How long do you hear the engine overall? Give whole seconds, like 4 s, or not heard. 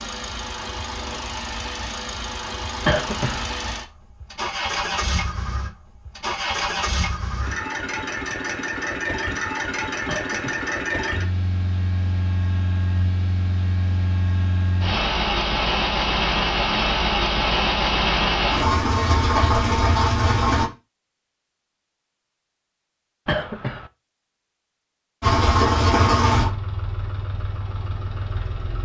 24 s.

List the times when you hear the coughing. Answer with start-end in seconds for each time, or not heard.
2.9-3.5, 10.1-10.7, 23.2-23.9.